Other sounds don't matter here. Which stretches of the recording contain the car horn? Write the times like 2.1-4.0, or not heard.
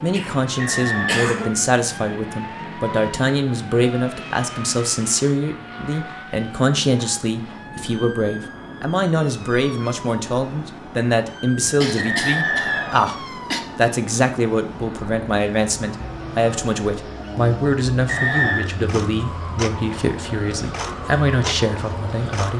not heard.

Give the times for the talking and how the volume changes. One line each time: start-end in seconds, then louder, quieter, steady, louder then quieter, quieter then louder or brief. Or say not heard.
0.0-22.5 steady.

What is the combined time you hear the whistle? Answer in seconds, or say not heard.
3 s.